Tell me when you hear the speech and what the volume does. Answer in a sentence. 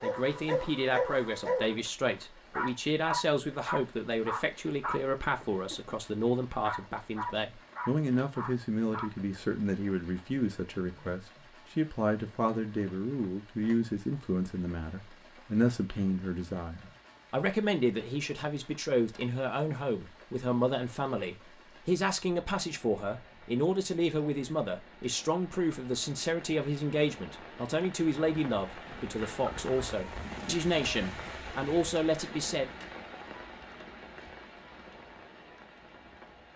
You can hear the speech from 0.0 to 32.7 s, at a steady volume.